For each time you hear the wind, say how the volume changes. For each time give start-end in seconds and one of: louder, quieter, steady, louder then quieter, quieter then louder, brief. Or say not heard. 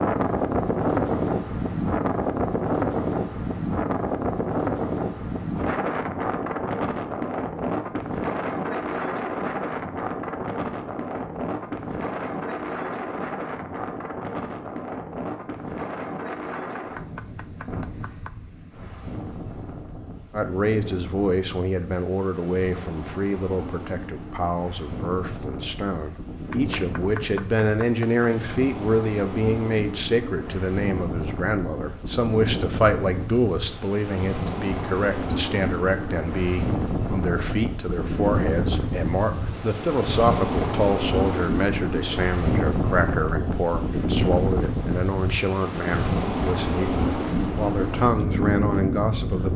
0.0-49.5 quieter then louder.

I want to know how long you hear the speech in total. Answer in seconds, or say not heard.
29 s.